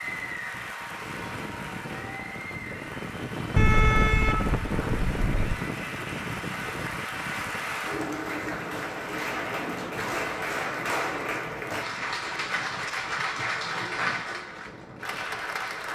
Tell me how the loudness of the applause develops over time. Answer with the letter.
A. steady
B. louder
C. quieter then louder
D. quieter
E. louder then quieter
B.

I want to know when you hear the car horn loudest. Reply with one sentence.
The loudest moment of the car horn is at 4 seconds.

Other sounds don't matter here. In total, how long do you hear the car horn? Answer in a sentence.
The car horn can be heard for 2 seconds in total.